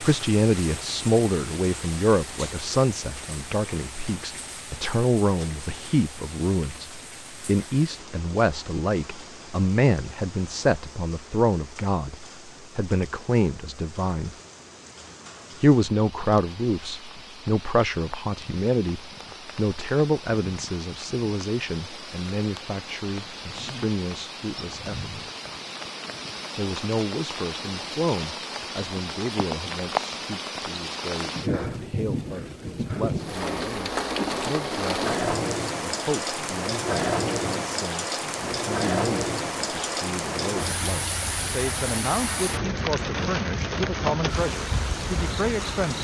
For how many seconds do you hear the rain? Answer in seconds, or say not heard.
46 s.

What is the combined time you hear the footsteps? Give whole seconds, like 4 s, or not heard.
not heard.